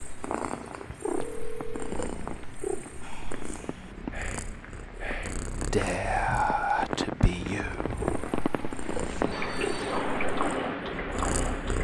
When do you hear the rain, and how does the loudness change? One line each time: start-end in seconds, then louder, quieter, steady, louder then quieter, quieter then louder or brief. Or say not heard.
0.0-11.8 louder.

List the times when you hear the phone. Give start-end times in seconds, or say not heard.
1.1-1.9, 9.3-10.1.